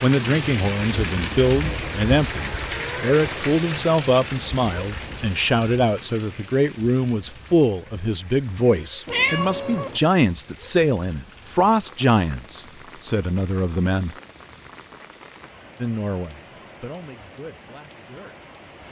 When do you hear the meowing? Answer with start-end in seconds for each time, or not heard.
9.1-10.0.